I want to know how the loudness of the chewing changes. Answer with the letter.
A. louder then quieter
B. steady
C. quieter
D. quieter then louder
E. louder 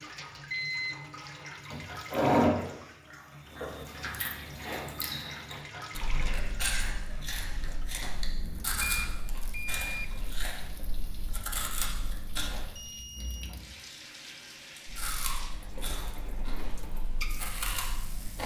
C.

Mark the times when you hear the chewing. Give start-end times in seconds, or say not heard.
1.7-12.7, 14.8-18.4.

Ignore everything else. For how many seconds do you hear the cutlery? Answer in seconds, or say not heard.
not heard.